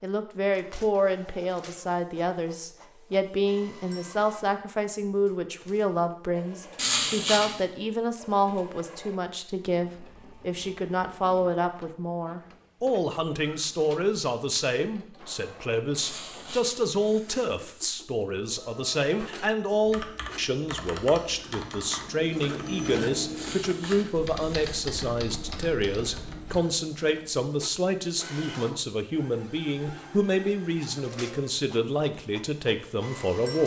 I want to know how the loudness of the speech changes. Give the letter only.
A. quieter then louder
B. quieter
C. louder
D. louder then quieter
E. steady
E.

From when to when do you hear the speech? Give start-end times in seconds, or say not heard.
0.0-33.6.